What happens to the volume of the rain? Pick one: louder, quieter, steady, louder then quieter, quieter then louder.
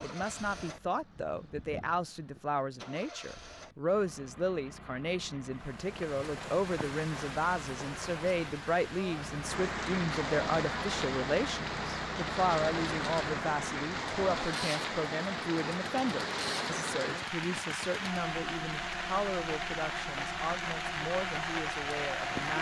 louder.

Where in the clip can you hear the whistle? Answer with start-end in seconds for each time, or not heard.
not heard.